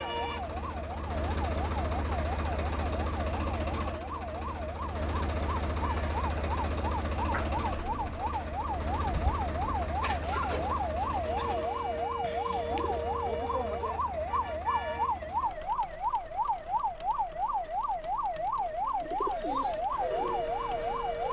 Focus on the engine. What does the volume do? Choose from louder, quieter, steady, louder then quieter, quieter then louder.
quieter.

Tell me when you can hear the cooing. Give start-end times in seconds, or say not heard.
7.2-13.1, 19.0-21.2.